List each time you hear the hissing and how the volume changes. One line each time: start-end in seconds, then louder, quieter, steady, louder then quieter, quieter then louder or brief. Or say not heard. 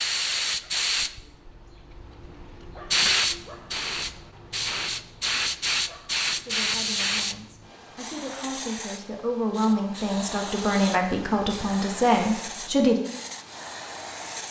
0.0-14.4 quieter.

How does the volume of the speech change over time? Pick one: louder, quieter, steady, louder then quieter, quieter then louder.
louder.